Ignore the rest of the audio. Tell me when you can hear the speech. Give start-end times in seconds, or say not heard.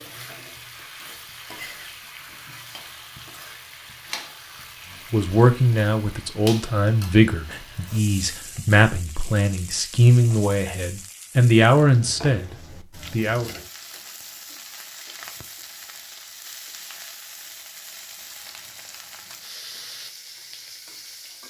5.1-13.5.